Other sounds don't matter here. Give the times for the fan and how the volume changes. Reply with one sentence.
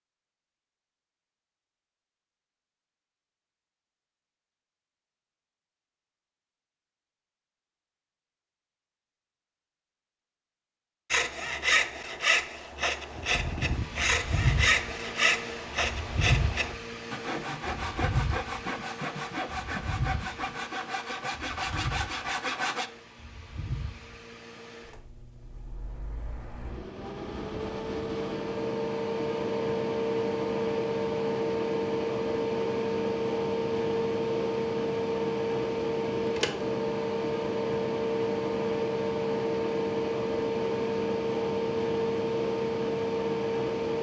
You can hear the fan from 13.2 to 43.9 s, getting quieter then louder.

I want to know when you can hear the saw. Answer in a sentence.
You can hear the saw from 11.1 to 22.9 s.